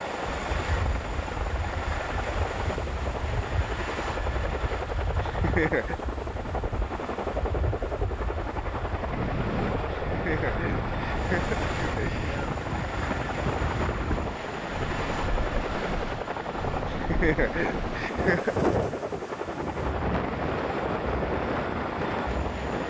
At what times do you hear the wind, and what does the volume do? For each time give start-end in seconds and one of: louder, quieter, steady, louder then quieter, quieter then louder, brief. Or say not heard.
0.0-22.8 louder.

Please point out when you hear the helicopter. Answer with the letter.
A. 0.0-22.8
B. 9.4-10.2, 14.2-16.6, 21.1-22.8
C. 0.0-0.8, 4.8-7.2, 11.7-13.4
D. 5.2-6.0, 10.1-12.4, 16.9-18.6
A.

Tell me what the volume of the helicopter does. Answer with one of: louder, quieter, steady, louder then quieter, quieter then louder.
steady.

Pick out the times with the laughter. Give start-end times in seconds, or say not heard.
5.2-6.0, 10.1-12.4, 16.9-18.6.